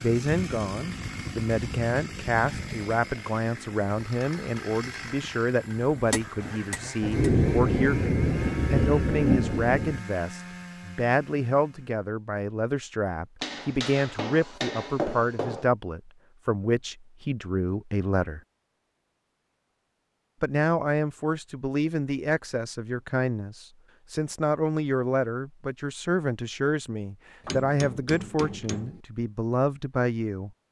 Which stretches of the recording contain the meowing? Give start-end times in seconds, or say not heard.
not heard.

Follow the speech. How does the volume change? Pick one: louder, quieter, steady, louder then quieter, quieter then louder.
steady.